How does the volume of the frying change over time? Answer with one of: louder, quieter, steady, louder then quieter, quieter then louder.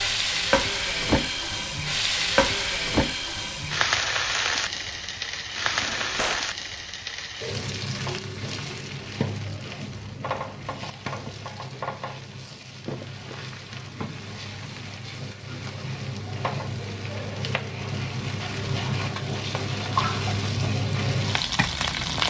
quieter then louder.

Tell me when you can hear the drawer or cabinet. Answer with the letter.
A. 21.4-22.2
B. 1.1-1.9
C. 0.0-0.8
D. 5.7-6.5
D.